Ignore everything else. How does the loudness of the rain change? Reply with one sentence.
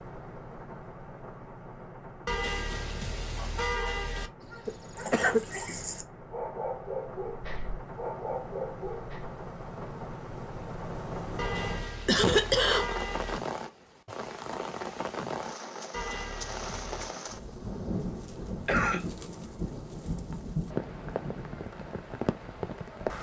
The volume of the rain goes up.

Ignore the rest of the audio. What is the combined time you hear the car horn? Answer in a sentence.
The car horn can be heard for 5 seconds in total.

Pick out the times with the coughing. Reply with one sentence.
You can hear the coughing from 4.7 to 5.4 s, from 12.1 to 12.9 s and from 18.6 to 19.1 s.